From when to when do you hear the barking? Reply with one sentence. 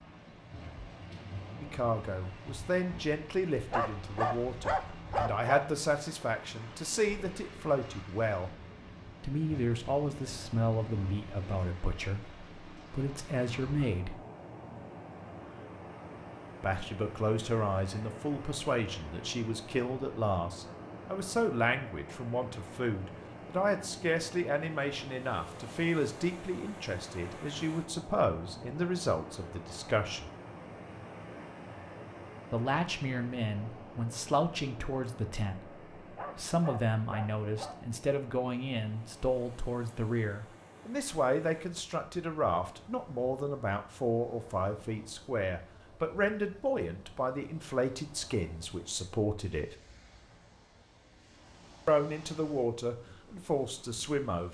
You can hear the barking from 3.7 to 5.7 s and from 36.1 to 37.8 s.